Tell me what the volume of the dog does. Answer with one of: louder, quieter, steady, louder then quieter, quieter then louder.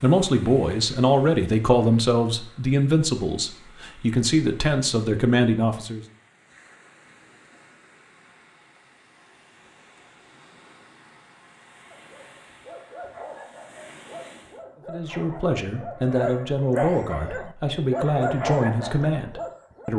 louder.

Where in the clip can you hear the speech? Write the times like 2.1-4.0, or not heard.
0.0-6.0, 14.8-19.9.